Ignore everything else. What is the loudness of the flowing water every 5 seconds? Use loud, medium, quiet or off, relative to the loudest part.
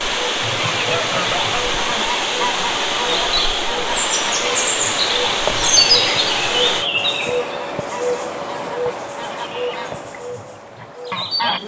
loud, loud, off.